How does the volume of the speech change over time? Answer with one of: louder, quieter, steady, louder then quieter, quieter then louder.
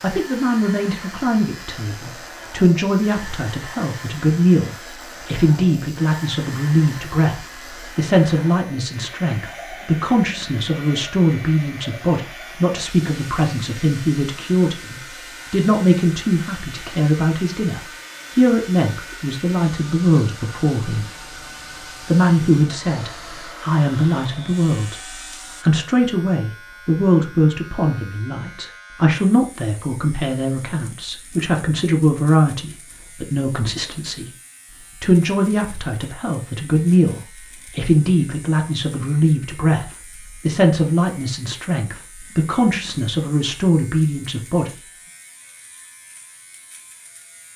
steady.